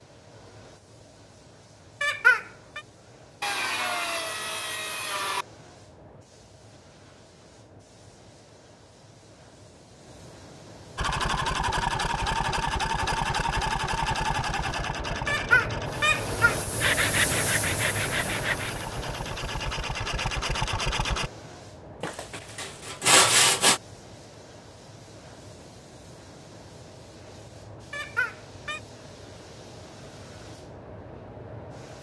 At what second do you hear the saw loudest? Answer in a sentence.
The loudest moment of the saw is at 23 seconds.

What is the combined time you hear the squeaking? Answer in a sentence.
The squeaking can be heard for 3 seconds in total.